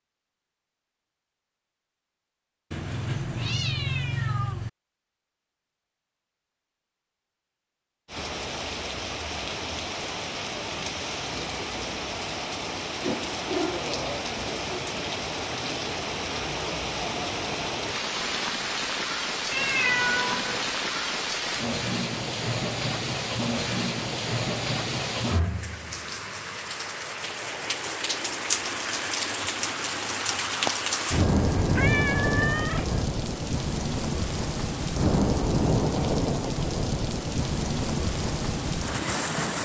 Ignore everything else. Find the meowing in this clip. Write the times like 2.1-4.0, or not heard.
2.7-4.7, 19.5-20.7, 31.1-33.1.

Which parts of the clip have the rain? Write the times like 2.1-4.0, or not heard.
8.1-39.5.